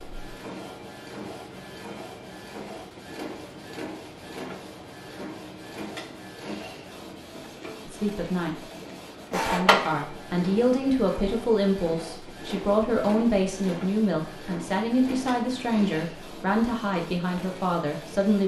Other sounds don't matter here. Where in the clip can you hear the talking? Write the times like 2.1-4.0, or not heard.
7.8-8.6, 9.3-18.4.